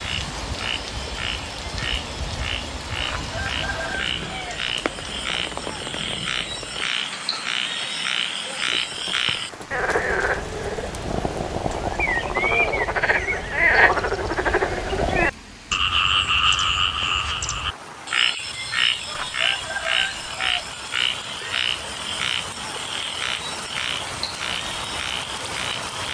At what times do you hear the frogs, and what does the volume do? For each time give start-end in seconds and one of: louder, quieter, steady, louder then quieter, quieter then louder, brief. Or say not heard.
0.0-26.0 louder then quieter.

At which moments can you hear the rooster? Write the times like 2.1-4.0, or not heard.
3.0-4.6, 19.1-20.6.